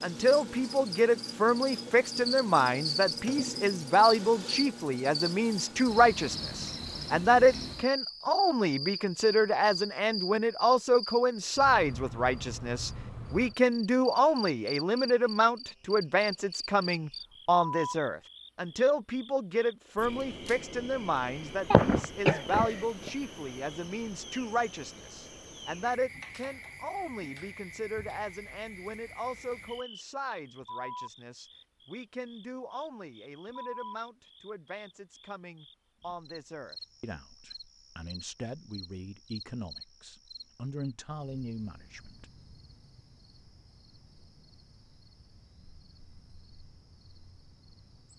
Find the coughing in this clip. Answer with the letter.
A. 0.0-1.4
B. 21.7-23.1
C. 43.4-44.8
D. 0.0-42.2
B.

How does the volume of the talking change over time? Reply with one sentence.
The volume of the talking goes down.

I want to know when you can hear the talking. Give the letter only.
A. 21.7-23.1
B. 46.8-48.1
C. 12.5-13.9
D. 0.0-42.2
D.